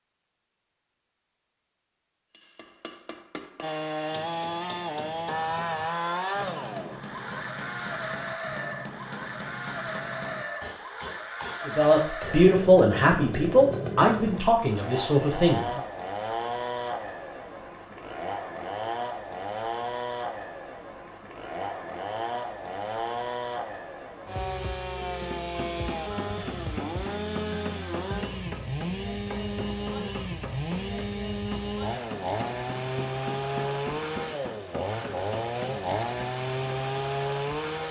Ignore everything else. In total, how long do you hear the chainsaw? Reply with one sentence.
You can hear the chainsaw for 34 seconds altogether.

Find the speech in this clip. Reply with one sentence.
The speech can be heard from 11.7 to 15.8 s.